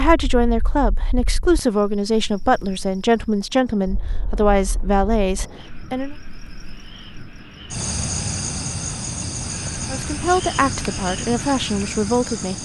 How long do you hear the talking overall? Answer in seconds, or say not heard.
9 s.